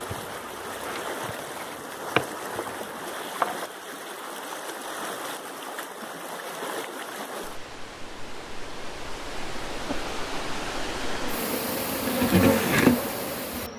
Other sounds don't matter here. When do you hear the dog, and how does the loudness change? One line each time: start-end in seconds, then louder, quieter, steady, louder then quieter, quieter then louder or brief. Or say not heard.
not heard.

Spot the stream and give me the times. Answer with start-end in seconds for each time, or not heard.
0.0-13.7.